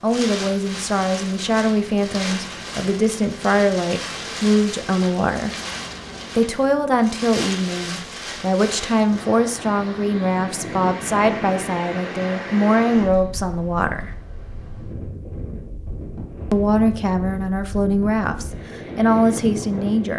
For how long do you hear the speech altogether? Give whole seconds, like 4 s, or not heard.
17 s.